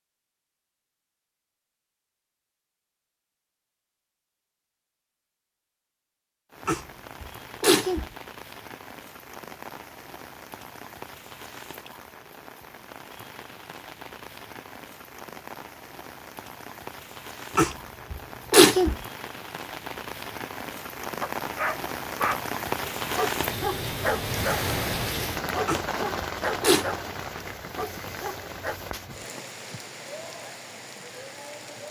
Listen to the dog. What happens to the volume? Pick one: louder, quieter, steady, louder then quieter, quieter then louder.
quieter.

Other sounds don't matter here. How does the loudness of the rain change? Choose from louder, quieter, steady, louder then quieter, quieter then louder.
louder then quieter.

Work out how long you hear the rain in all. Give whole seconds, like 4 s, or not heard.
25 s.